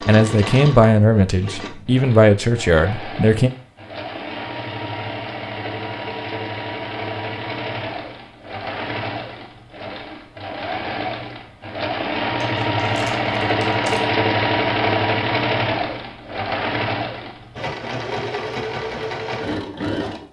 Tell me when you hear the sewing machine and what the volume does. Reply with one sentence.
The sewing machine can be heard from 0.0 to 20.2 s, getting louder then quieter.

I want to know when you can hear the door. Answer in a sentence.
The door can't be heard in this clip.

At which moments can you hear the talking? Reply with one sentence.
You can hear the talking from 0.1 to 3.5 s.